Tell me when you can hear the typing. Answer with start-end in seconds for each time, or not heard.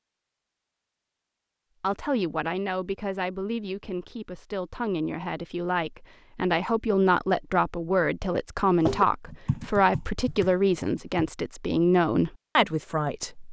8.8-11.3.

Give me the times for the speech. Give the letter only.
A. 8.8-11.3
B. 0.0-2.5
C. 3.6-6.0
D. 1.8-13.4
D.